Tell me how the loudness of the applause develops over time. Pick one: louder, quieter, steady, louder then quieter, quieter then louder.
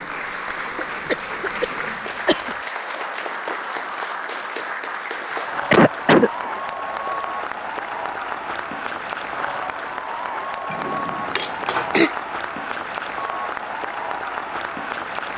steady.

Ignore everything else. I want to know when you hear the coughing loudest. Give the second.
6 s.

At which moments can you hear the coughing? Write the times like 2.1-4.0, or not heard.
0.8-2.5, 5.3-6.3, 11.3-12.1.